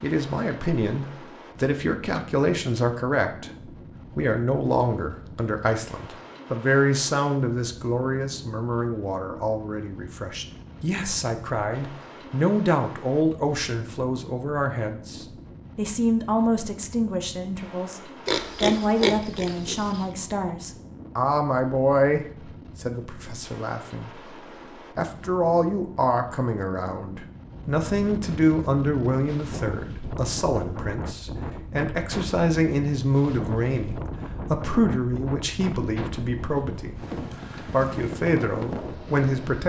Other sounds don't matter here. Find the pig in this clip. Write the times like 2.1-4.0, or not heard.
18.2-20.1.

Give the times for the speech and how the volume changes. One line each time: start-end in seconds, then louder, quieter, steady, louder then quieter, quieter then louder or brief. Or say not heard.
0.0-24.3 steady
24.9-39.6 steady.